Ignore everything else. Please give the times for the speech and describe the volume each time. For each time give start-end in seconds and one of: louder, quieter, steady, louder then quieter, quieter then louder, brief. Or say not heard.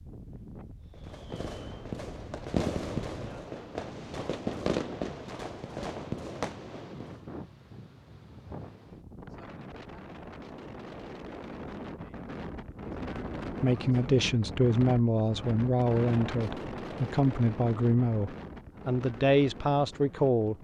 13.6-20.5 steady.